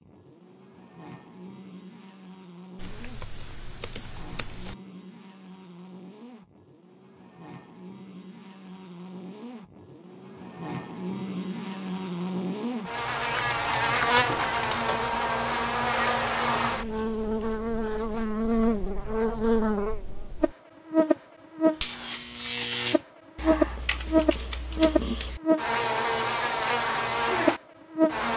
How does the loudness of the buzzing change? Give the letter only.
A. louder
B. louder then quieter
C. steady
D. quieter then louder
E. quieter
A.